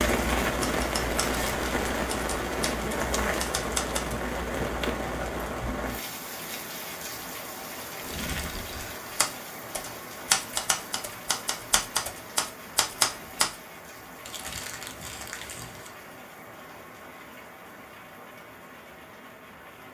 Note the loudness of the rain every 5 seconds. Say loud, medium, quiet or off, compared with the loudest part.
loud, medium, quiet, quiet.